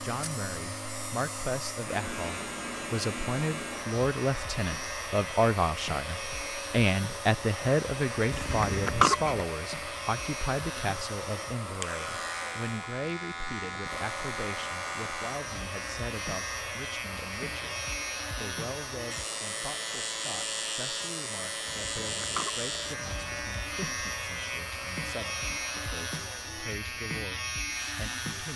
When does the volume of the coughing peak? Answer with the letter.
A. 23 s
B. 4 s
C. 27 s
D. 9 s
D.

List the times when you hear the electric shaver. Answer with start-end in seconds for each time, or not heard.
0.0-28.5.